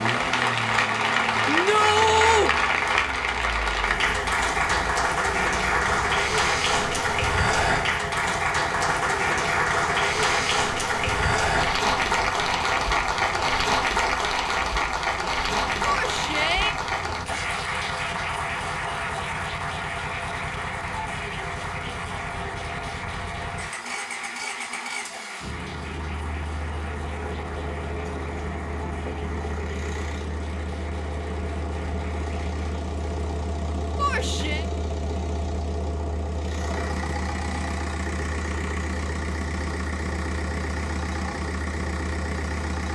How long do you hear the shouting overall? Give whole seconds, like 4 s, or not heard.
3 s.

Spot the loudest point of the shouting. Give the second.
2 s.